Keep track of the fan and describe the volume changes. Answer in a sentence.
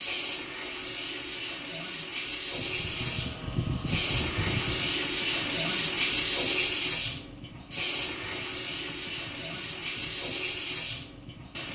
The loudness of the fan goes down.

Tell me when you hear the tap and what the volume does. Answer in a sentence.
The tap can be heard from 0.0 to 11.7 s, getting louder then quieter.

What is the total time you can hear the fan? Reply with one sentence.
You can hear the fan for 9 seconds altogether.